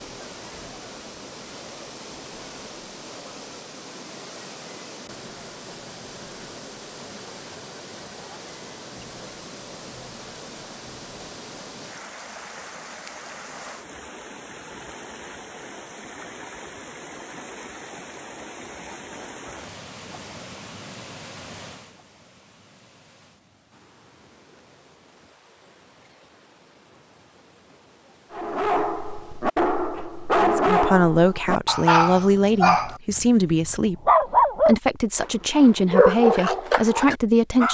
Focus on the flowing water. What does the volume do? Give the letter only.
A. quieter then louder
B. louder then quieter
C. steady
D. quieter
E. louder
D.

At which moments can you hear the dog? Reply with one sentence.
The dog can be heard from 28.3 to 37.6 s.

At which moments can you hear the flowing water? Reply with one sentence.
You can hear the flowing water from 0.0 to 29.6 s.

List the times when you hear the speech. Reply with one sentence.
The speech can be heard from 30.4 to 37.6 s.